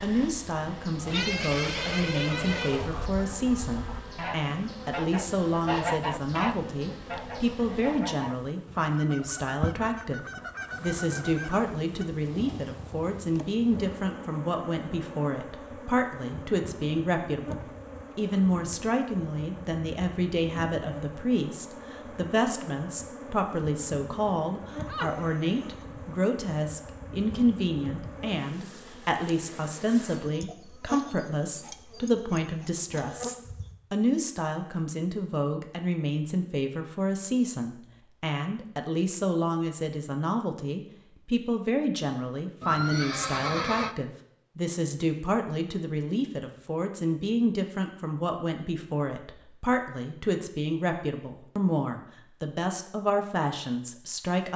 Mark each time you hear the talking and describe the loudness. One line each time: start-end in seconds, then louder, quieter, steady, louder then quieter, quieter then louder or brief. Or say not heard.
0.0-54.5 steady.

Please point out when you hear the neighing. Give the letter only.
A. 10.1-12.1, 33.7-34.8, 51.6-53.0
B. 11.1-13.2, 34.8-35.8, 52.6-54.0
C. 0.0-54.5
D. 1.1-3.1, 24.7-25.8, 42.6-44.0
D.